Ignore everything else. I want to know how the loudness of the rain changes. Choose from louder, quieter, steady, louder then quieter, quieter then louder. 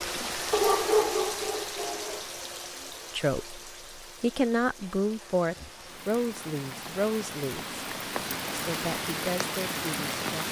quieter then louder.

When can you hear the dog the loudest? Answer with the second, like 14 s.
1 s.